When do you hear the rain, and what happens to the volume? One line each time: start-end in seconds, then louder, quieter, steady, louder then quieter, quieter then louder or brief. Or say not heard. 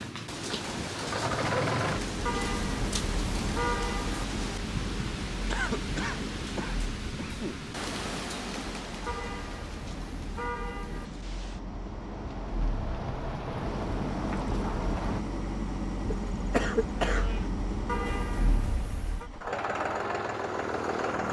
0.0-15.2 quieter then louder.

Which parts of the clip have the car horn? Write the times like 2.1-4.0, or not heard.
2.2-4.2, 9.1-11.1, 17.9-19.3.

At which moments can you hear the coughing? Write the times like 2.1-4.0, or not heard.
5.5-7.6, 16.1-17.5.